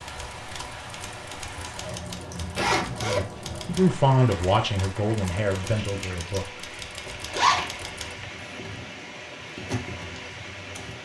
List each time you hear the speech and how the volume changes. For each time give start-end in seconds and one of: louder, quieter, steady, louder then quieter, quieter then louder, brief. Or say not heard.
3.0-7.1 quieter.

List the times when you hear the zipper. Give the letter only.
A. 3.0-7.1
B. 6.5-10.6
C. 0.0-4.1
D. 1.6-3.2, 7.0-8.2
D.